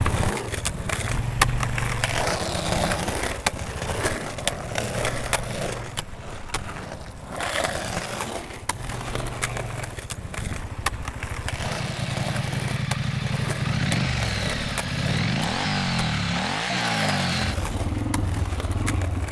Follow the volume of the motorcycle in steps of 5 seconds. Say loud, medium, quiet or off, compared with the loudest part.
medium, quiet, loud, loud.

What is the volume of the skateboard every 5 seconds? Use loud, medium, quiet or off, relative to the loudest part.
loud, medium, medium, medium.